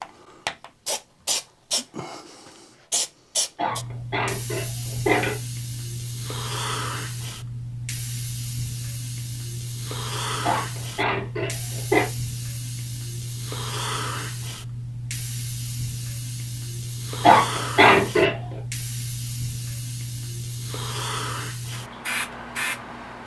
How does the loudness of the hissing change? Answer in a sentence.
The loudness of the hissing stays about the same.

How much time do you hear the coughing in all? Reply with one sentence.
The coughing can be heard for 5 seconds in total.